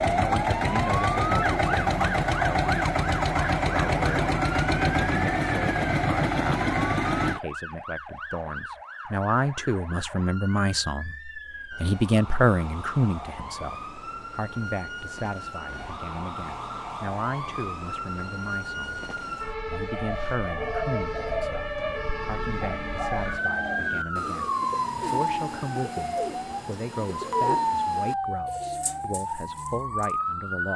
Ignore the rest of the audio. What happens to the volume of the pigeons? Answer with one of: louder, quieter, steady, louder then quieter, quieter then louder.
quieter.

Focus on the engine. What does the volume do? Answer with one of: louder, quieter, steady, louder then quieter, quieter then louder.
steady.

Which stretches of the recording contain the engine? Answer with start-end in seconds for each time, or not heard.
0.0-7.4.